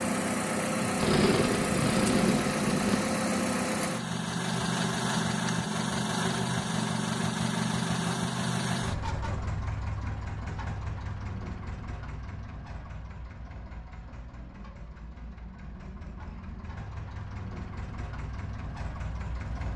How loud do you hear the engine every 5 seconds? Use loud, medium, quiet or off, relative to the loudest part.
loud, loud, quiet, quiet.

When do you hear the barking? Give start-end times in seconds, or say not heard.
not heard.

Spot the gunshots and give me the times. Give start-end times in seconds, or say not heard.
0.9-3.0.